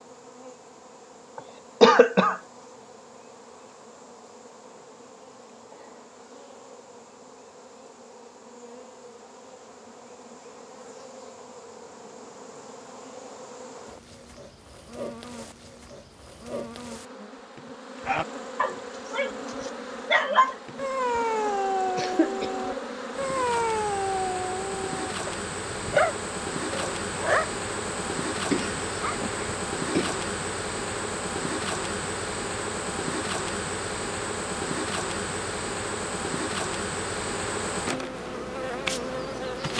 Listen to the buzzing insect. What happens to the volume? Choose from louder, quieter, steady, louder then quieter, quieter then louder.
louder.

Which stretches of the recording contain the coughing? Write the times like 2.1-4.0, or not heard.
1.4-2.4, 21.9-22.5, 28.5-30.2.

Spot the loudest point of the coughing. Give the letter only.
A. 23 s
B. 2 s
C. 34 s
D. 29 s
B.